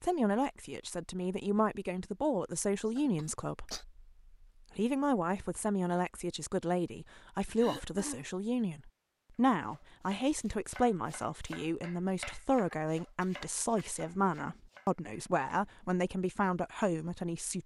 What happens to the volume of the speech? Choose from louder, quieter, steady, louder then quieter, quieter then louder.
steady.